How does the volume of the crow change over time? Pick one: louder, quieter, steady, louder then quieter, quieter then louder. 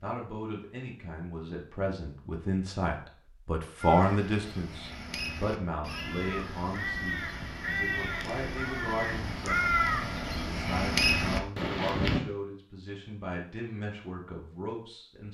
louder.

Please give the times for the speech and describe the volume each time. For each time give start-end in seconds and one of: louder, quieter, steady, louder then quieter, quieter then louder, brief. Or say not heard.
0.0-15.2 louder then quieter.